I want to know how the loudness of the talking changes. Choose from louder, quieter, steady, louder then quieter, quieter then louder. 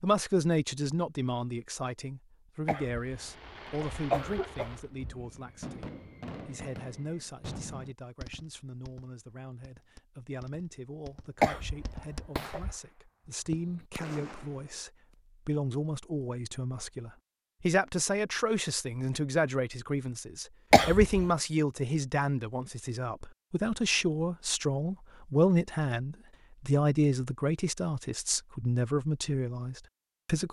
quieter then louder.